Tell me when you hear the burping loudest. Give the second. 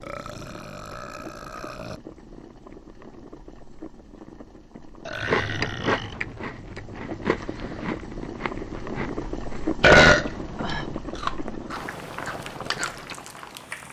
10 s.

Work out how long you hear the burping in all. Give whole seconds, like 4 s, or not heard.
4 s.